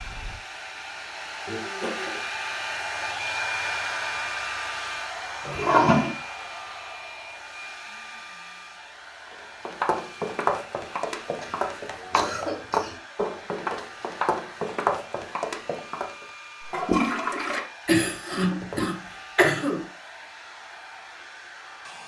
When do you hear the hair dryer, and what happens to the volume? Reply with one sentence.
The hair dryer can be heard from 0.0 to 22.0 s, getting quieter.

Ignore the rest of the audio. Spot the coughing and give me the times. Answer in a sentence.
You can hear the coughing from 1.4 to 2.2 s, from 11.2 to 13.0 s and from 17.9 to 19.9 s.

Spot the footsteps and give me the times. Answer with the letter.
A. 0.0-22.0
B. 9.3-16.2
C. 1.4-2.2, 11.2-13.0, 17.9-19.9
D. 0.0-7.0
B.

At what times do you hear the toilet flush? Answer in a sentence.
You can hear the toilet flush from 5.5 to 6.1 s and from 16.6 to 17.6 s.